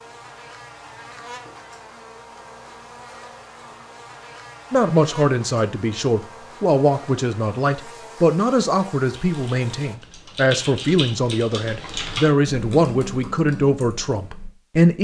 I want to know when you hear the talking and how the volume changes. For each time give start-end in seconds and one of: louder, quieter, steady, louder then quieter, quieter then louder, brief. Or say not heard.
4.7-14.9 steady.